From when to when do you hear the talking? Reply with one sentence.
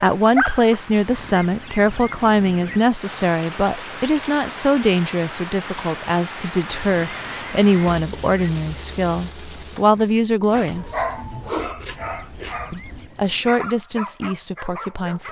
The talking can be heard from 0.0 to 11.1 s and from 12.7 to 15.2 s.